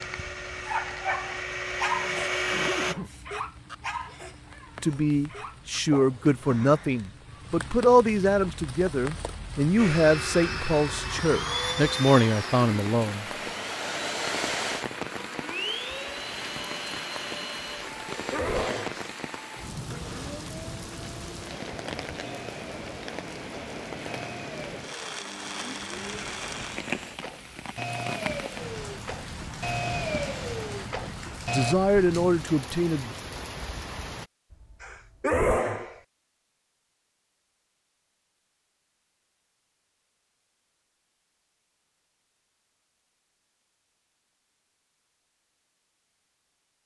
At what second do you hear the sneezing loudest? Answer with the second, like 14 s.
35 s.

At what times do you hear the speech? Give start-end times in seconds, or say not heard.
4.8-13.2, 31.5-33.1.